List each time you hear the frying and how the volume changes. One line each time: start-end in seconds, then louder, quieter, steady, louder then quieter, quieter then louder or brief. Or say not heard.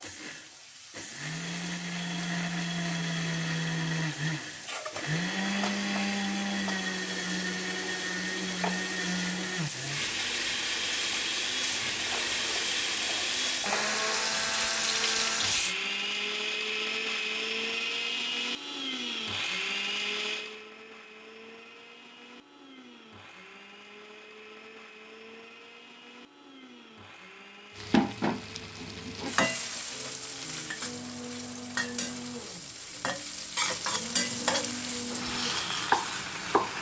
0.0-15.8 louder
27.8-36.7 quieter then louder.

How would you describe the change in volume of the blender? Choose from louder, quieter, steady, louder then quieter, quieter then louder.
quieter then louder.